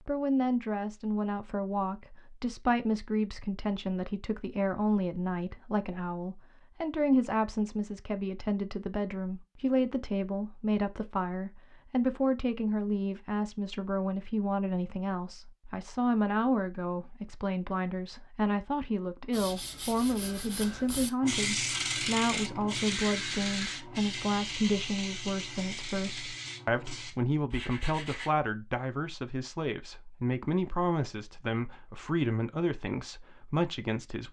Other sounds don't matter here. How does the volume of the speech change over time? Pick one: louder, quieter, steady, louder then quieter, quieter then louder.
steady.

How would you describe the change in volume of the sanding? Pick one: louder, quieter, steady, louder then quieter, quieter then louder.
louder then quieter.